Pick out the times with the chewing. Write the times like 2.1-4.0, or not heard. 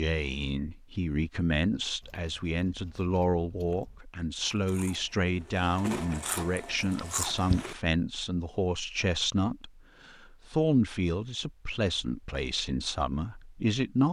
2.0-7.8.